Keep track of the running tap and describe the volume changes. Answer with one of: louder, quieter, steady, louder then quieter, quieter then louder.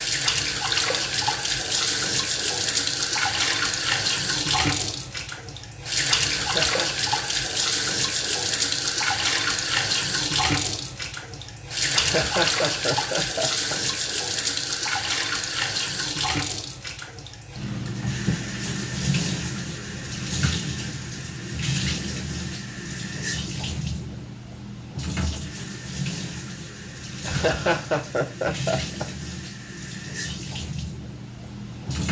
quieter.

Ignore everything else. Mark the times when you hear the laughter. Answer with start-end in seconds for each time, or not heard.
6.3-6.9, 11.9-13.8, 27.2-29.1.